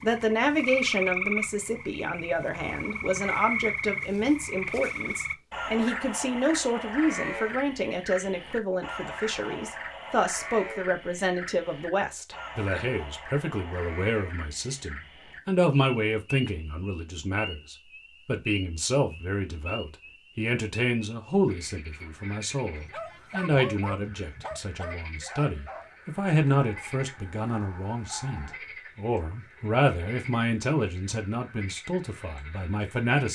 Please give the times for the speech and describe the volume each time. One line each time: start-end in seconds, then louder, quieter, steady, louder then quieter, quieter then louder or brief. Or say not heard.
0.0-33.3 steady.